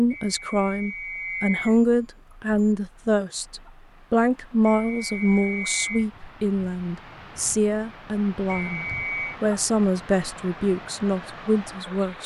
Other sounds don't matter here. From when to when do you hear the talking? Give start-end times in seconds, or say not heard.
0.0-12.2.